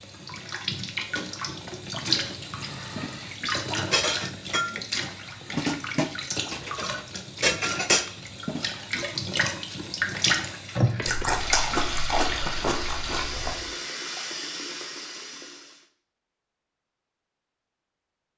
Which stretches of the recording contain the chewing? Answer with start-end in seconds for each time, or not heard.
11.1-13.6.